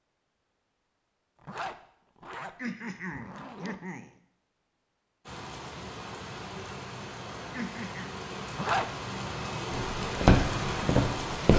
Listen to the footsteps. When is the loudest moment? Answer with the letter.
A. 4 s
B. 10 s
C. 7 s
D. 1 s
B.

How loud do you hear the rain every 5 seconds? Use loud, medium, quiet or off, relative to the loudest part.
off, medium, loud.